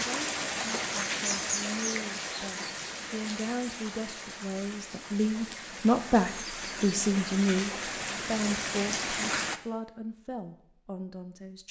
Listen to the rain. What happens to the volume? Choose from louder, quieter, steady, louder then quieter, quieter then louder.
quieter then louder.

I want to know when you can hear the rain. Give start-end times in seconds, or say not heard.
0.0-9.6.